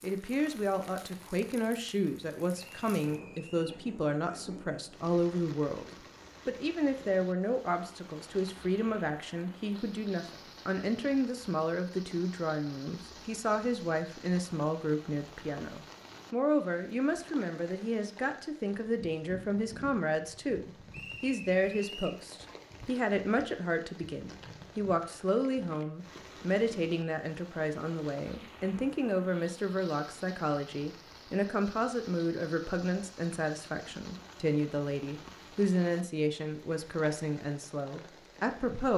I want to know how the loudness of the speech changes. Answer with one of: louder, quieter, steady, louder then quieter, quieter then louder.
steady.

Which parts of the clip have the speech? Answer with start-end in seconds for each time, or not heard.
0.0-38.9.